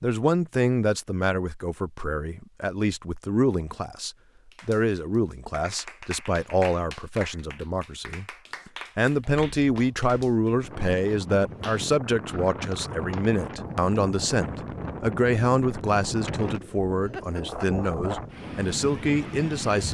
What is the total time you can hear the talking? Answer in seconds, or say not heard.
20 s.